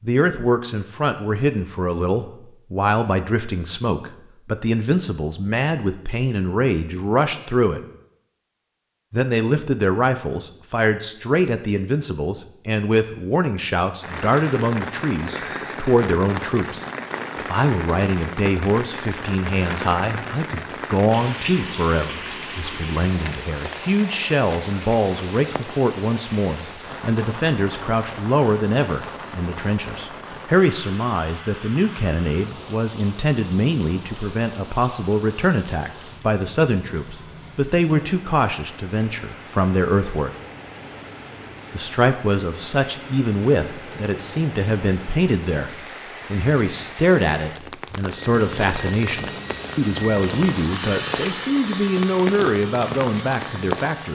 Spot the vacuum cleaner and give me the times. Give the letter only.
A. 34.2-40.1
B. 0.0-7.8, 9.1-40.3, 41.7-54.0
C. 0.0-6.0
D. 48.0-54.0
D.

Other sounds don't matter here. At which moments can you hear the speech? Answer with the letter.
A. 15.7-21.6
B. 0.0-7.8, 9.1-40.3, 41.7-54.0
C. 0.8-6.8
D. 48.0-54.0
B.